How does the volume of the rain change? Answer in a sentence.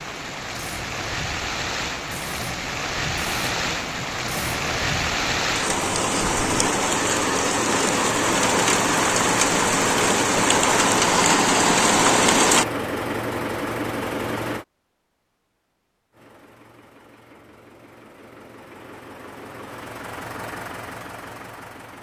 The volume of the rain goes up.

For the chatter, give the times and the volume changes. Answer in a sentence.
You can't hear the chatter here.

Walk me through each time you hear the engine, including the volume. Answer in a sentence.
The engine can be heard from 0.0 to 14.7 s, getting louder; and from 16.1 to 21.9 s, getting louder.